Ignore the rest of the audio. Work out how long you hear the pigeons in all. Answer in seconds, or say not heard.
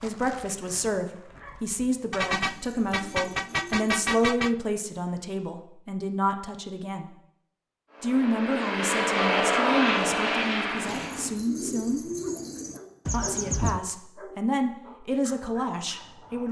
4 s.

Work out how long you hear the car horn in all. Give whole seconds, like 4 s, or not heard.
3 s.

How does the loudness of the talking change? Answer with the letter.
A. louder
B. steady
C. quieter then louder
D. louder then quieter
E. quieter
B.